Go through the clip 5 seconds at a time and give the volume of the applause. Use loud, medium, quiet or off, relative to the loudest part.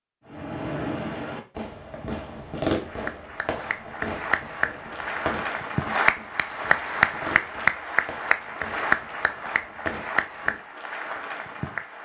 medium, loud, medium.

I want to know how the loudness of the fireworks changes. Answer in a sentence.
The volume of the fireworks goes down.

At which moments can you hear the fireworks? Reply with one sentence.
You can hear the fireworks from 0.3 to 11.2 s.